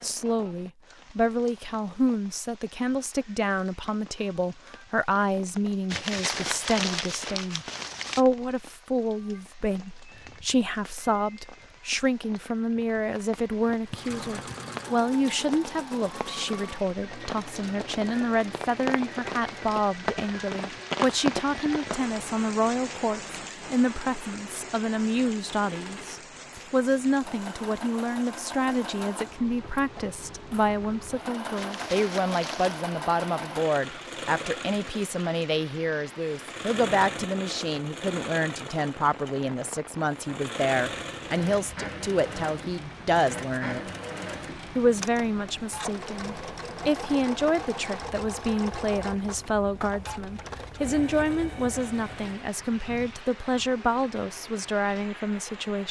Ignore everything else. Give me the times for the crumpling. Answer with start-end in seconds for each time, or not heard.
5.9-8.2, 31.6-32.9.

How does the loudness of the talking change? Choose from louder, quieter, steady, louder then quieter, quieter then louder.
steady.